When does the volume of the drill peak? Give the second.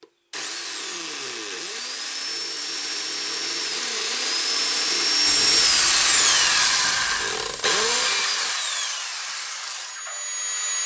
6 s.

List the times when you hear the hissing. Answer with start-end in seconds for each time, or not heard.
5.2-8.2.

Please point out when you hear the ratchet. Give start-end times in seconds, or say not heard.
not heard.